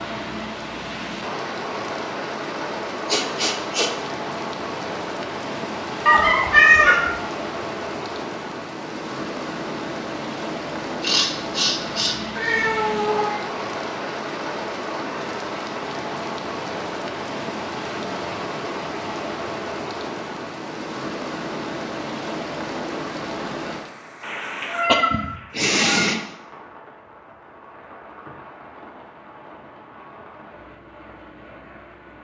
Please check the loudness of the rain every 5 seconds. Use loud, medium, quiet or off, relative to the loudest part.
loud, loud, loud, loud, loud, quiet, quiet.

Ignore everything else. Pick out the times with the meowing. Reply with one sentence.
You can hear the meowing from 6.0 to 7.1 s, from 12.3 to 13.4 s and from 24.6 to 26.1 s.